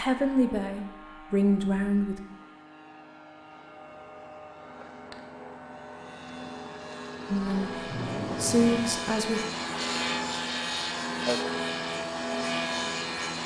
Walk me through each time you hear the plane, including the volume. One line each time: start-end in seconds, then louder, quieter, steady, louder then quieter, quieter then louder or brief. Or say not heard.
0.0-13.4 louder.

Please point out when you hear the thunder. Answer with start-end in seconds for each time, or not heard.
7.5-8.9.